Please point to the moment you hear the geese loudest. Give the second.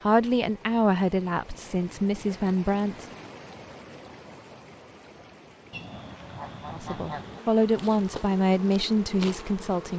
7 s.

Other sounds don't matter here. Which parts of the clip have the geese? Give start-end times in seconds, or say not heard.
5.7-7.4.